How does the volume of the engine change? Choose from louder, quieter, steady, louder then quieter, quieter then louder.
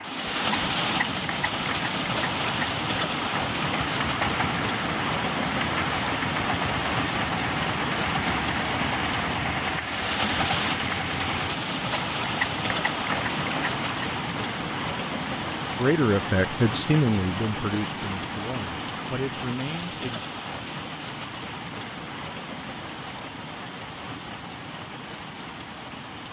steady.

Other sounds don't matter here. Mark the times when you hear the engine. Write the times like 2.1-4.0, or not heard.
0.0-14.1.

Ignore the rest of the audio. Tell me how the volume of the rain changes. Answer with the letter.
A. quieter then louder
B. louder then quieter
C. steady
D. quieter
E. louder
D.